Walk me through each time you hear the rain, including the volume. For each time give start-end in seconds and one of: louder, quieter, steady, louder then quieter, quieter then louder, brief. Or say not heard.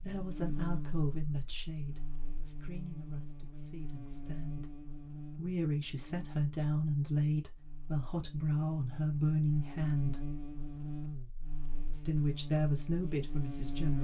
not heard.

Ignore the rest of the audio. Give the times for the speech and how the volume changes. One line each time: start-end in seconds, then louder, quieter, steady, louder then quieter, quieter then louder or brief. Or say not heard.
0.0-10.3 quieter then louder
11.9-14.0 brief.